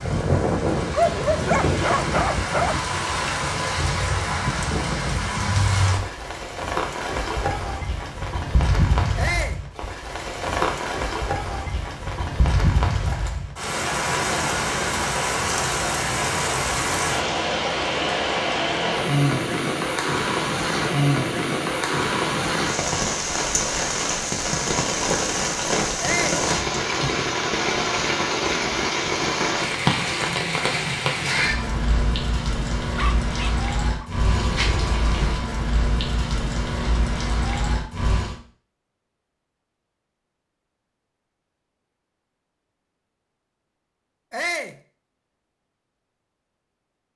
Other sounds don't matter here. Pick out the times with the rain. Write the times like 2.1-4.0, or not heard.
0.0-38.4.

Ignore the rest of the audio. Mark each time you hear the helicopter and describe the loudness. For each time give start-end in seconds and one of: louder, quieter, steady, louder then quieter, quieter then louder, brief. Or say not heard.
not heard.